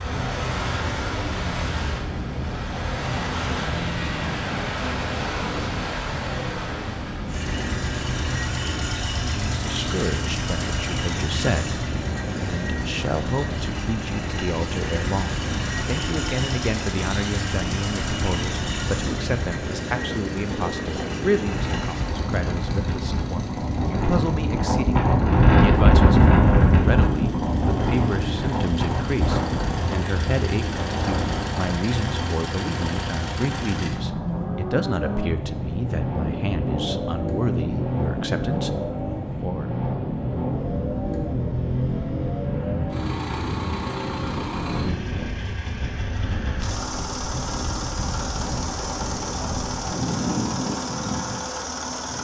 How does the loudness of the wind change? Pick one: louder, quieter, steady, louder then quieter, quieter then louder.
louder then quieter.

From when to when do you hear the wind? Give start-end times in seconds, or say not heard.
0.0-52.1.